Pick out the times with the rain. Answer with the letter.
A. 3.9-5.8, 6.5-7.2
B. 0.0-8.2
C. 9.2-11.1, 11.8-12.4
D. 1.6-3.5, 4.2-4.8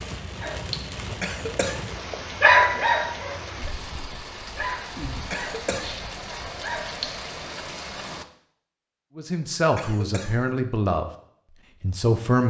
B.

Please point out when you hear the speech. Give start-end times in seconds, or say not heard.
9.2-11.1, 11.8-12.4.